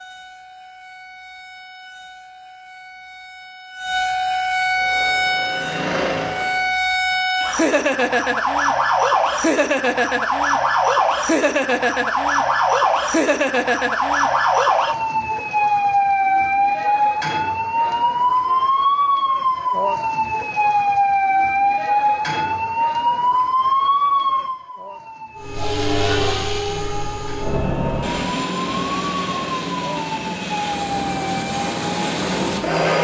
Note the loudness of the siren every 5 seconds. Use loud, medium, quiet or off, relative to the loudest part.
medium, loud, loud, loud, loud, quiet, medium.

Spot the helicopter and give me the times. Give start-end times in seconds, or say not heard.
4.7-6.7, 25.4-32.9.